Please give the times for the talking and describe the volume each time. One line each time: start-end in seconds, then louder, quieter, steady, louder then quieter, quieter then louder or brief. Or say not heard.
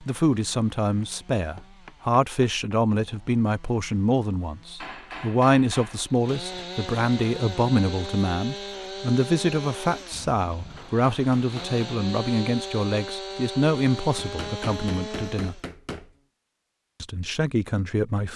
0.0-15.6 steady
17.0-18.3 brief.